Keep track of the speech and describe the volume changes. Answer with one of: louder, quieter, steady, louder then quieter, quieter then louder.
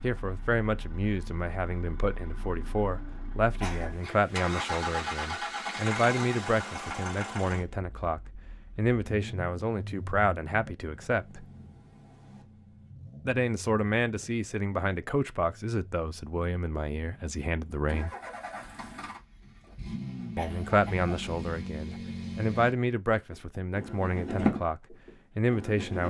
steady.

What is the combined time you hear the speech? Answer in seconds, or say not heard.
22 s.